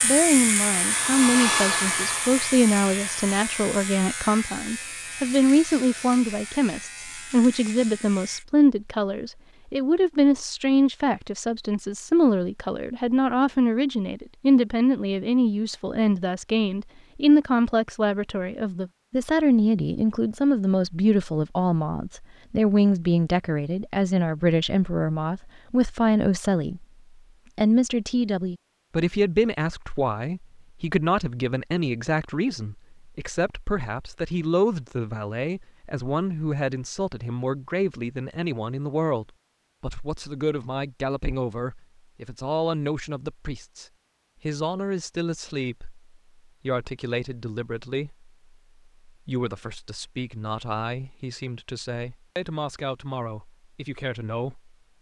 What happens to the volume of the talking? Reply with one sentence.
The loudness of the talking goes down.